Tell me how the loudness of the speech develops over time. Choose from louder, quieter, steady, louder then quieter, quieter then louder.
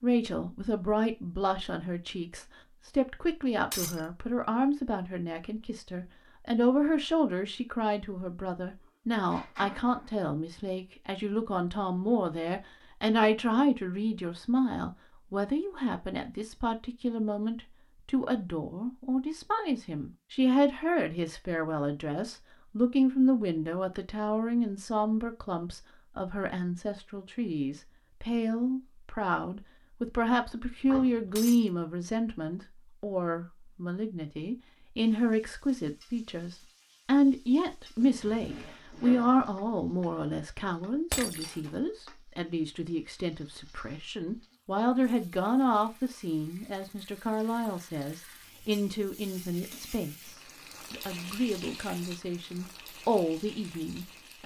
steady.